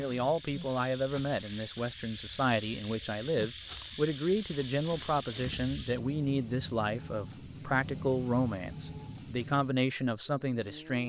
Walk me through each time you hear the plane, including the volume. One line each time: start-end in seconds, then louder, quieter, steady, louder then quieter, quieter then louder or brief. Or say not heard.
not heard.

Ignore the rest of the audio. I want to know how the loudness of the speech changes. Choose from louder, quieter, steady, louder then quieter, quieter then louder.
steady.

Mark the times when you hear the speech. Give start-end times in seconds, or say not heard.
0.0-11.0.